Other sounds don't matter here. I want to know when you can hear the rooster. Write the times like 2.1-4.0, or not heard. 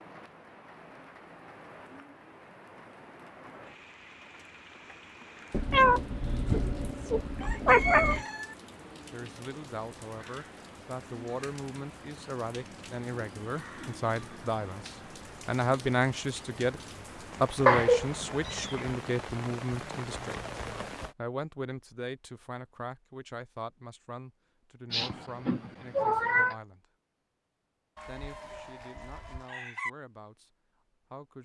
7.4-8.6, 27.9-29.9.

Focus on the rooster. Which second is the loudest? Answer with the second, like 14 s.
8 s.